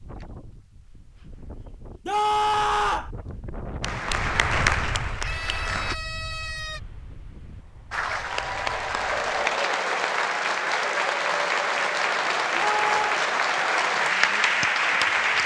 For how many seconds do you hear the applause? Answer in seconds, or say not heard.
10 s.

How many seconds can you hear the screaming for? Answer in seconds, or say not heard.
3 s.